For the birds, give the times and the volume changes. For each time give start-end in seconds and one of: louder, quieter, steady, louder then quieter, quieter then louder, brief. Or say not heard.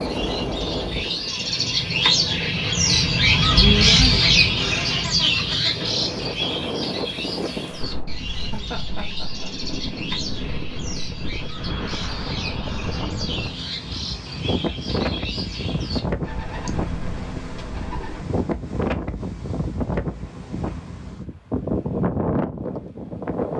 0.0-18.4 quieter.